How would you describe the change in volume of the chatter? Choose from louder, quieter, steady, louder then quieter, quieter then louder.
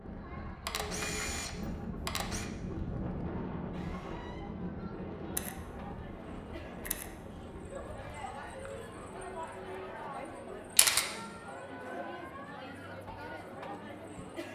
louder.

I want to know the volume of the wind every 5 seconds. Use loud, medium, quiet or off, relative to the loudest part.
loud, medium, off.